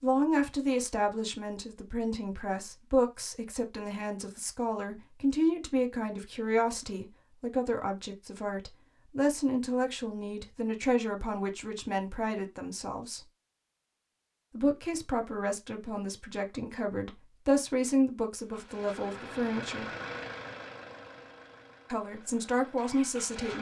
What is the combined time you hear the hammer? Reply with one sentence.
The hammer can't be heard in this clip.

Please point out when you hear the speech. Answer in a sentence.
You can hear the speech from 0.0 to 13.2 s, from 14.6 to 19.9 s and from 21.9 to 23.5 s.